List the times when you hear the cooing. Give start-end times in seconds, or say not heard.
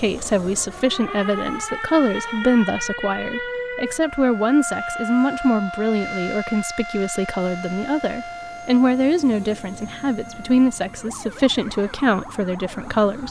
not heard.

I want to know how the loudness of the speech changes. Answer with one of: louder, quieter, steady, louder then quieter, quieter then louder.
steady.